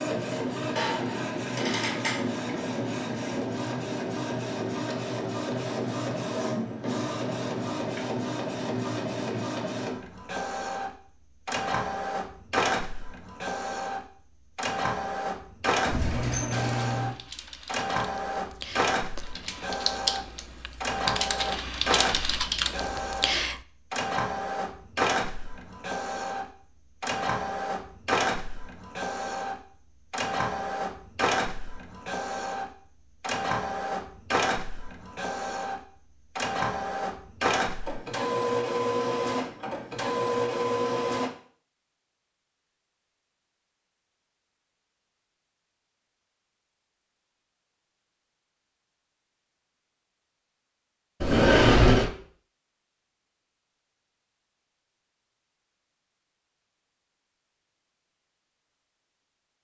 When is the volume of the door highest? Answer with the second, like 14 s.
52 s.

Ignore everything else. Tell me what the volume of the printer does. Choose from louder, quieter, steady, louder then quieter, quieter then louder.
steady.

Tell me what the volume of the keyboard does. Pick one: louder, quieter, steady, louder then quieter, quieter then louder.
louder.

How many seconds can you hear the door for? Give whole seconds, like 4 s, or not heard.
2 s.